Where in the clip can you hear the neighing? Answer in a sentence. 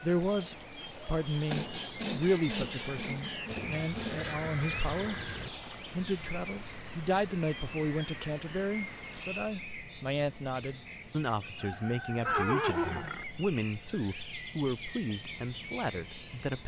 You can hear the neighing from 3.5 to 5.5 s and from 12.2 to 13.2 s.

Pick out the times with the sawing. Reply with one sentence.
You can hear the sawing from 1.5 to 4.5 s.